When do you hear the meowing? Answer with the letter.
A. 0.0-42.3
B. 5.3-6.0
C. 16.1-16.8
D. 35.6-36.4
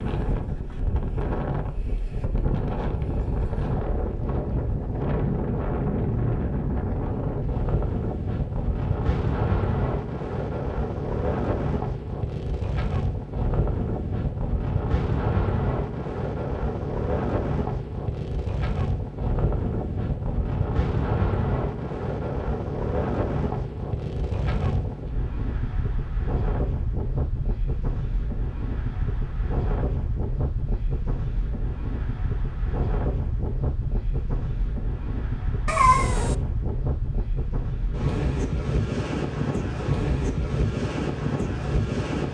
D.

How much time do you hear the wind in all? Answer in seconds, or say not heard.
42 s.